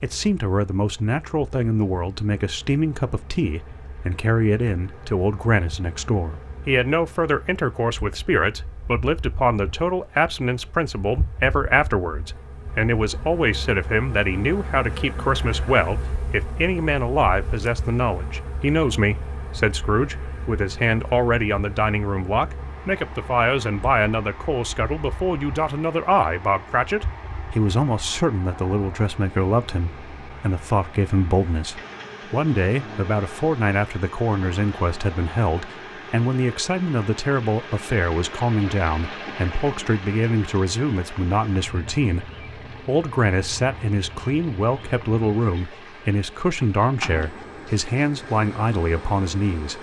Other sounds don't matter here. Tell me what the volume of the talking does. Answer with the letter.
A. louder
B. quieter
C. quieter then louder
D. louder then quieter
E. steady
E.